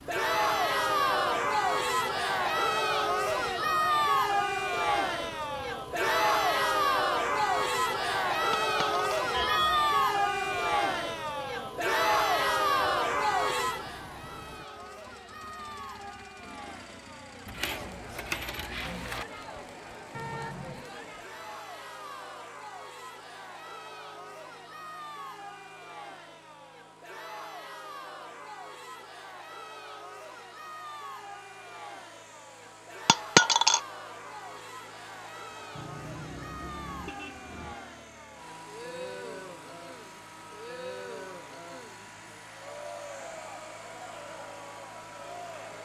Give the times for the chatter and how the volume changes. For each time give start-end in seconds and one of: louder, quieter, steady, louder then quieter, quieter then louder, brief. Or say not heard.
0.1-45.8 quieter.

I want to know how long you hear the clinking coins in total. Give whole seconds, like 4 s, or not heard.
3 s.